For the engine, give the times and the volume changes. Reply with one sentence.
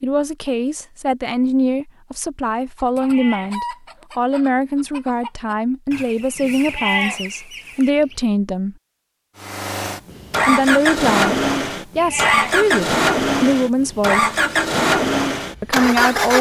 You can hear the engine from 9.4 to 16.3 s, at a steady volume.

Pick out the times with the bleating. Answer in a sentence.
The bleating can be heard from 3.0 to 3.5 s, from 6.6 to 7.2 s and from 11.9 to 12.6 s.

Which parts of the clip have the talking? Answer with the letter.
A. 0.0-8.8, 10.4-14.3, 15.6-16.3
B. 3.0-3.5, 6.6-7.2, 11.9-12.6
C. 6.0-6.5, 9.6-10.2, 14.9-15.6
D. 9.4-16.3
A.